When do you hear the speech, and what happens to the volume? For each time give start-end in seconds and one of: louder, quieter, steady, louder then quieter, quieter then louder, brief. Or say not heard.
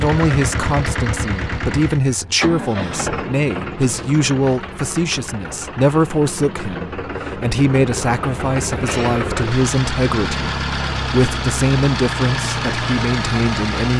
0.0-13.9 steady.